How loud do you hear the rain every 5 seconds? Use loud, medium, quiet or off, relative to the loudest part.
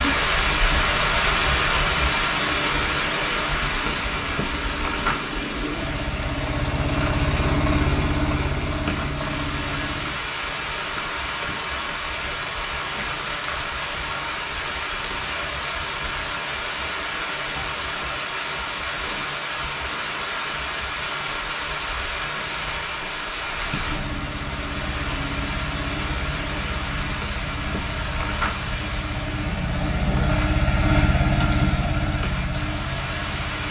loud, medium, medium, medium, medium, medium, medium.